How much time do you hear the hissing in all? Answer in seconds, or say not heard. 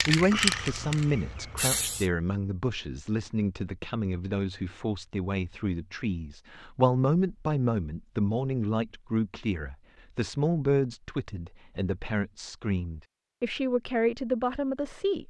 2 s.